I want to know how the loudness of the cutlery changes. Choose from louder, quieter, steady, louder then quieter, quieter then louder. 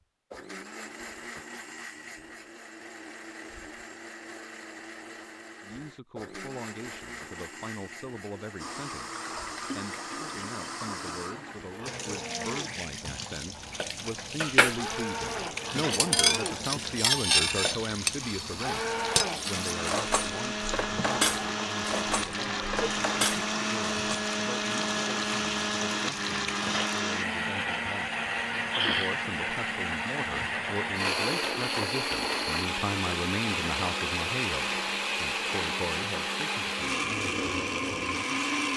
quieter.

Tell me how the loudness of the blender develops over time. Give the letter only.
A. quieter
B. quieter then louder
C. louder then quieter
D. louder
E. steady
D.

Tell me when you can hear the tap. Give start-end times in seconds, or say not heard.
8.6-27.1.